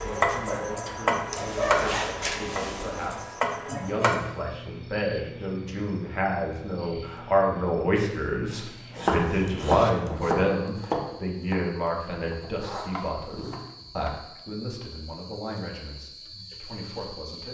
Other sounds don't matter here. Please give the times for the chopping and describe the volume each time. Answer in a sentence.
The chopping can be heard from 0.0 to 4.2 s, getting quieter then louder; and from 8.9 to 14.1 s, getting quieter then louder.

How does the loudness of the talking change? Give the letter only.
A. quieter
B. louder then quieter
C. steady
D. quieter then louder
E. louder
B.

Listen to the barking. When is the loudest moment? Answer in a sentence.
The volume of the barking peaks at 2 seconds.